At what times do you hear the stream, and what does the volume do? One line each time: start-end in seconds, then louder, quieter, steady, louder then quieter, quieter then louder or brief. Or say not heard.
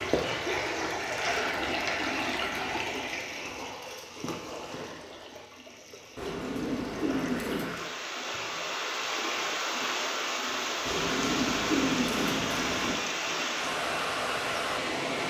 0.0-15.2 quieter then louder.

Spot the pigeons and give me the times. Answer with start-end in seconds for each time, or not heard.
1.1-3.0, 6.2-7.8, 10.8-13.0.